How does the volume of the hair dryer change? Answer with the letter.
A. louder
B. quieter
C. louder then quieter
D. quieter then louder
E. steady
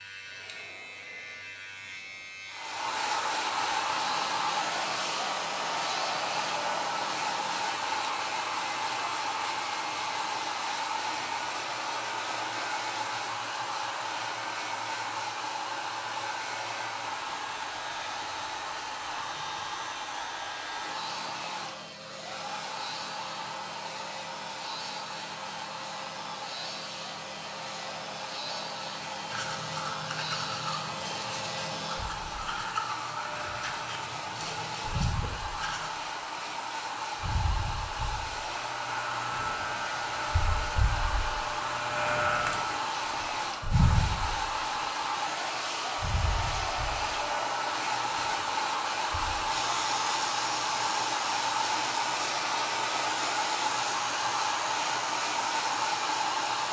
D.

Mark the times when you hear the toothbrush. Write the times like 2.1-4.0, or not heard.
29.3-35.9.